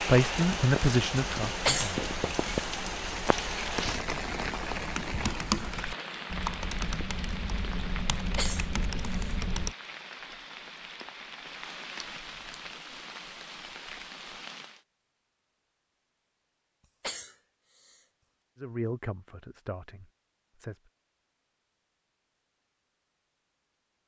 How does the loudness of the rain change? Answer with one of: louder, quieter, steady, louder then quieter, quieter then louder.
quieter.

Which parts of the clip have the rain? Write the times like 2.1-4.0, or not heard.
0.0-14.8.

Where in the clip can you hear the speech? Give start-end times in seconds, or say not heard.
0.0-2.0, 18.6-20.8.